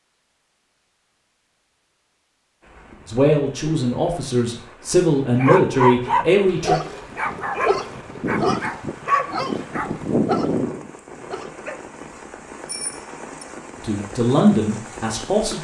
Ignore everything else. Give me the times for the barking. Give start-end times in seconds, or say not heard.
5.3-11.8.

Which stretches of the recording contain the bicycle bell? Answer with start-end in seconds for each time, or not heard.
12.7-13.4.